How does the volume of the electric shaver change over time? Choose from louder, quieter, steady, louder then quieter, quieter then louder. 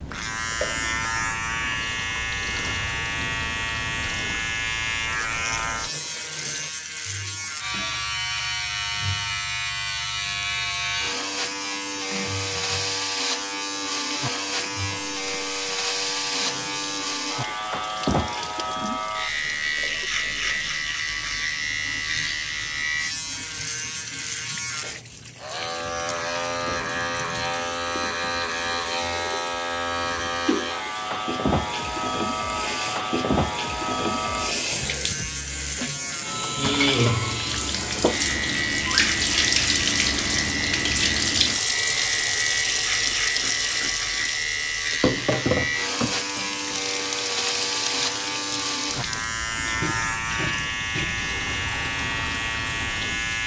steady.